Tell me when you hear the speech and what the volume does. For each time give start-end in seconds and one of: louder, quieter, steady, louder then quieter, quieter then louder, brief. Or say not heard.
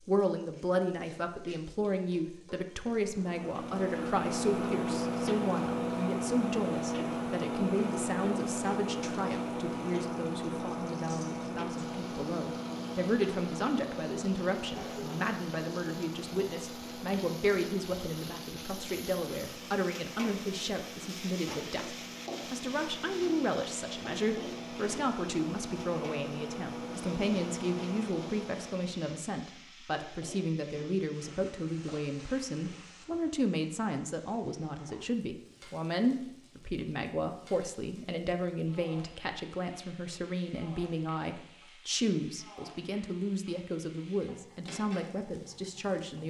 0.1-46.2 steady.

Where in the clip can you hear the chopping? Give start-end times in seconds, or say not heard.
not heard.